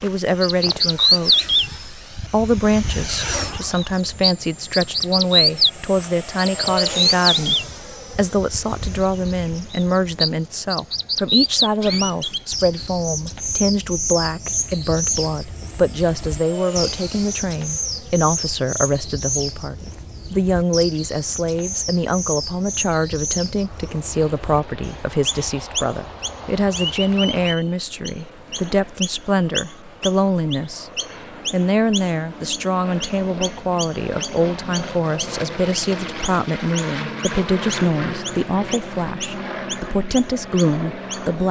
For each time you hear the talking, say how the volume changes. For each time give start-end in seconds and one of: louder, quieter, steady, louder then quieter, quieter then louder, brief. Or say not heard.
0.0-30.9 steady
31.5-41.4 steady.